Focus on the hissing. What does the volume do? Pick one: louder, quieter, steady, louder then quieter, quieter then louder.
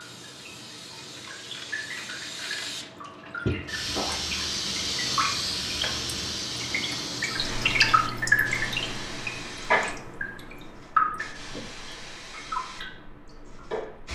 louder then quieter.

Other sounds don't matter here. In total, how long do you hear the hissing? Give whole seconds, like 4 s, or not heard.
14 s.